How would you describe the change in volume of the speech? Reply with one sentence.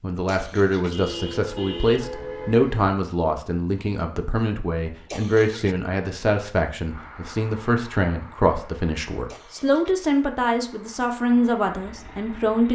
The volume of the speech stays about the same.